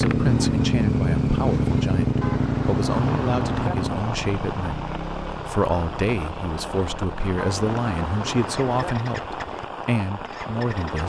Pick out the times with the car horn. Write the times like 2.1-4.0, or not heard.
2.2-3.8, 7.3-8.9.